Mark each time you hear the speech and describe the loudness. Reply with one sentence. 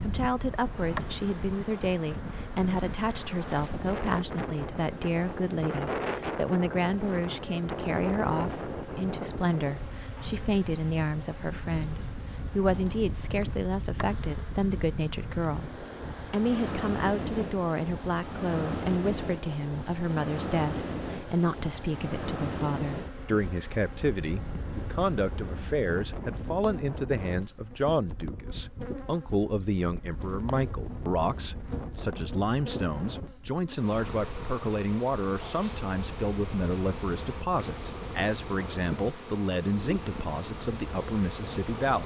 You can hear the speech from 0.0 to 42.0 s, at a steady volume.